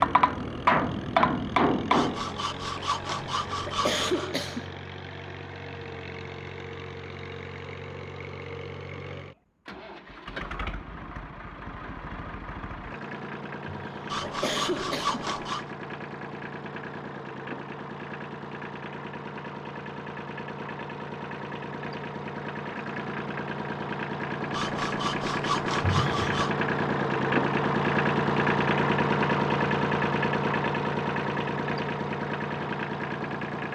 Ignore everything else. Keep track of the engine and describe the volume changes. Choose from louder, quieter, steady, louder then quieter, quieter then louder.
louder.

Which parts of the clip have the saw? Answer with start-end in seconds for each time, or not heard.
1.9-4.3, 14.1-15.7, 24.5-26.6.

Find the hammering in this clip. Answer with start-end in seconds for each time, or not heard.
0.0-2.3.